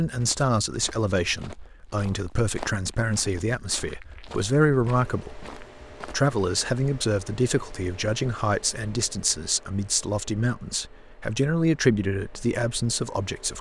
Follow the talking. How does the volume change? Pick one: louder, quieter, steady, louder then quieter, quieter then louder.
steady.